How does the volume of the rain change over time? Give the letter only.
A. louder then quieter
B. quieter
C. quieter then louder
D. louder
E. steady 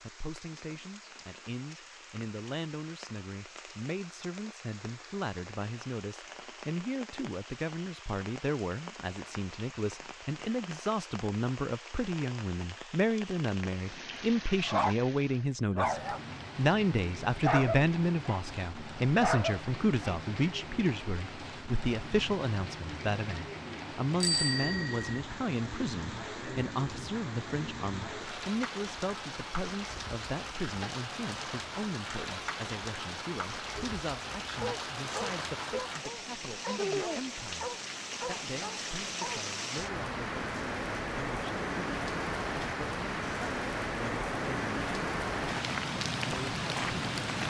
D.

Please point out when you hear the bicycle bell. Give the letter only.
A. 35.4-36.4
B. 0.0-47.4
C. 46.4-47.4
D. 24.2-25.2
D.